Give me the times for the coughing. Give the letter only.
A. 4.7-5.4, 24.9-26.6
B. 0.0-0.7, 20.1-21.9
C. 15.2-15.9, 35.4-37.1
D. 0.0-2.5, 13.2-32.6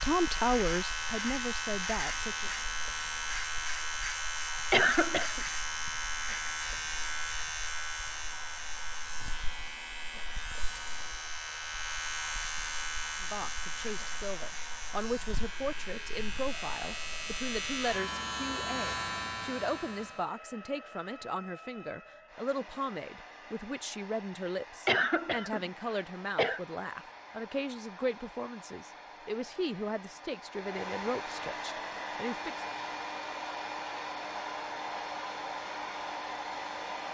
A.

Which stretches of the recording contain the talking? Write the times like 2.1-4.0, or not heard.
0.0-2.5, 13.2-32.6.